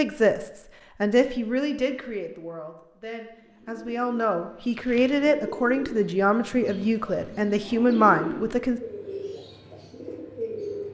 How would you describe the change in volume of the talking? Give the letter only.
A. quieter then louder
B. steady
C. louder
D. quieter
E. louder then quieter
A.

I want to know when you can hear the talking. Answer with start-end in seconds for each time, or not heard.
0.0-8.8.